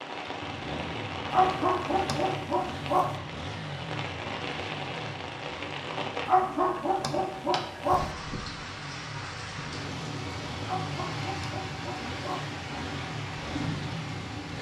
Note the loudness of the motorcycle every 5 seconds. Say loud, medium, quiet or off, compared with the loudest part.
loud, medium, loud.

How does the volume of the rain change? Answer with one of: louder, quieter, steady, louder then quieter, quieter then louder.
steady.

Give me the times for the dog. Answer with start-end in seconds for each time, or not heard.
1.3-3.1, 6.2-8.1, 10.7-12.5.